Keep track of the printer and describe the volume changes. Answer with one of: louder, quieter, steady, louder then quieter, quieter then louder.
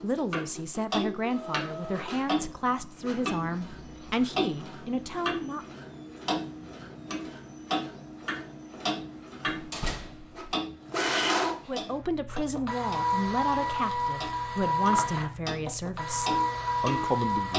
louder.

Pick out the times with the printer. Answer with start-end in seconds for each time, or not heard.
0.0-17.5.